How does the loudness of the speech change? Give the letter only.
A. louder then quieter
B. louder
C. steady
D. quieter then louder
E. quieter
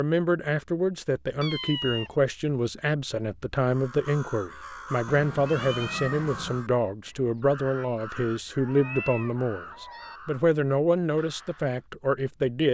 C.